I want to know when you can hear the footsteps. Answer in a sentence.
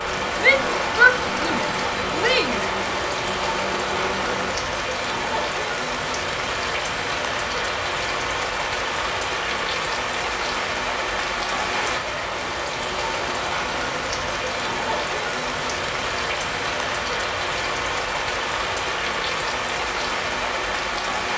You can't hear the footsteps here.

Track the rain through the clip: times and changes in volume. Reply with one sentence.
The rain can be heard from 0.0 to 21.3 s, at a steady volume.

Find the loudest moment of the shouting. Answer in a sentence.
The loudest moment of the shouting is at 1 second.